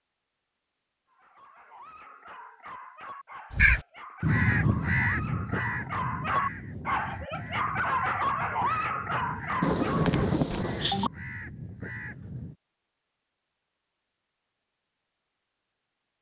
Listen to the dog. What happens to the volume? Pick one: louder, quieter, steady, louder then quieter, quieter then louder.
louder.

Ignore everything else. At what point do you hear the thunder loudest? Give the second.
11 s.